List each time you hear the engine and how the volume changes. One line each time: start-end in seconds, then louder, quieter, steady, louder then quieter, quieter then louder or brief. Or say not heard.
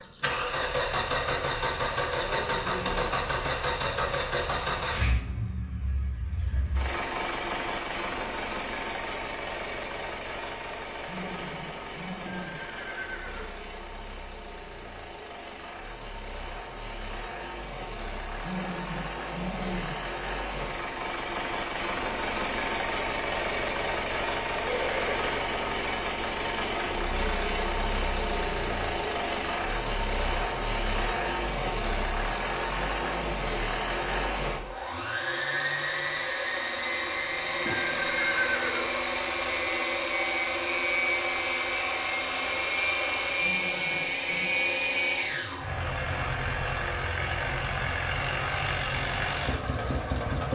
0.0-50.4 quieter then louder.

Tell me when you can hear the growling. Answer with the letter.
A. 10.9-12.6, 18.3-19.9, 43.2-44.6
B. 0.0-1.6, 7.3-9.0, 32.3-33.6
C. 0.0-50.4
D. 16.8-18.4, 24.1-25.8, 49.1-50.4
A.